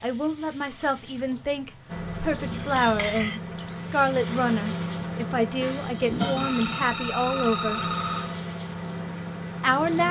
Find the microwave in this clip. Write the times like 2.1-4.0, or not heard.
1.9-10.0.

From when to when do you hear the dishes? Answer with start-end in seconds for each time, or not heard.
2.8-3.4, 5.5-6.5.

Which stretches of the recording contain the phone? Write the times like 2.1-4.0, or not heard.
2.0-3.4, 6.3-8.4.